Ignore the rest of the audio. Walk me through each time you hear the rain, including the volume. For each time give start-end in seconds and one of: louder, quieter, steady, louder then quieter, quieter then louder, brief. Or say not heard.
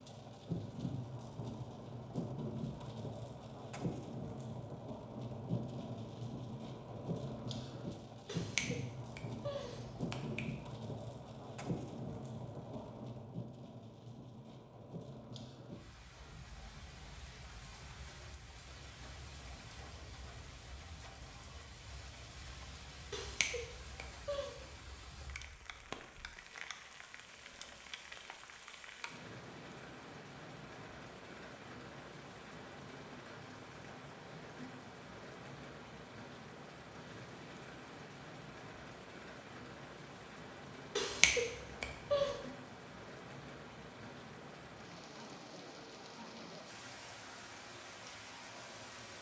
0.0-49.1 quieter.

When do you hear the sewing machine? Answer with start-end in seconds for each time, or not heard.
not heard.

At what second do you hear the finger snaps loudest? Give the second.
41 s.